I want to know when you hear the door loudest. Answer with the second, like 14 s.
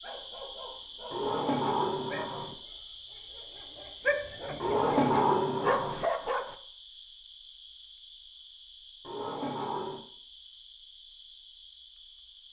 5 s.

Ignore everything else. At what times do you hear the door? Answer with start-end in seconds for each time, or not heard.
1.1-2.5, 4.6-6.0, 9.0-10.0.